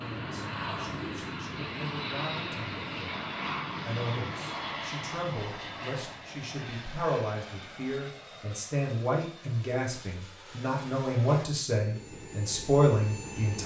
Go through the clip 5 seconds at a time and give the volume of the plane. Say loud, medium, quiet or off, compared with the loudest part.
loud, medium, medium.